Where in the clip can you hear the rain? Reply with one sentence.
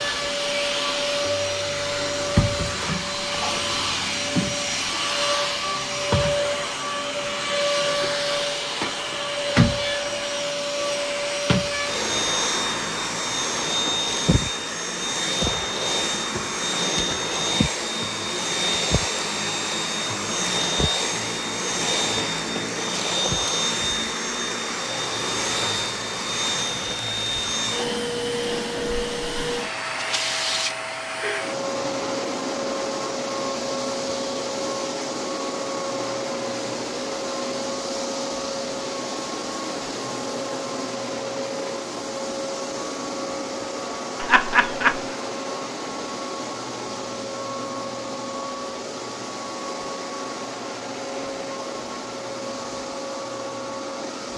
The rain can't be heard in this clip.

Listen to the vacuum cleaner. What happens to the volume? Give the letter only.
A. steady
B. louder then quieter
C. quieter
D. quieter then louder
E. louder
C.